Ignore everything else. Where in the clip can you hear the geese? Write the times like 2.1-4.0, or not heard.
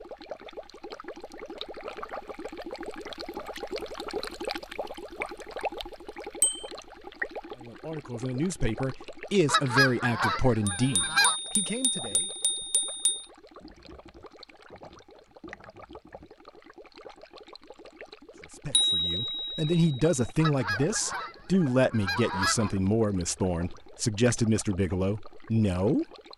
9.4-11.3, 20.4-22.8.